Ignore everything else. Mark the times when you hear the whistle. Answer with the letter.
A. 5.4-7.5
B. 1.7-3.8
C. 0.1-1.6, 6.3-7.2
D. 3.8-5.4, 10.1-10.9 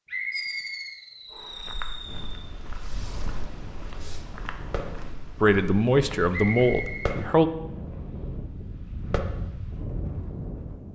C.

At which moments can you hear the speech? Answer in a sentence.
The speech can be heard from 5.4 to 7.5 s.